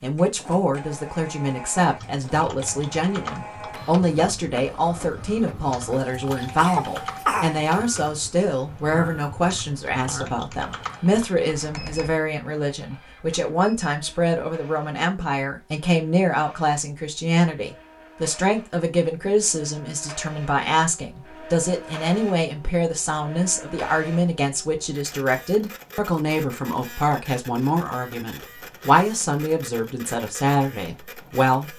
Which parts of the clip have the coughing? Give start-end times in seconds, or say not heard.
6.5-7.7.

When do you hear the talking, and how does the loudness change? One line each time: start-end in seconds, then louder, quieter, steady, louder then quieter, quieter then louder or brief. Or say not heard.
0.0-31.7 steady.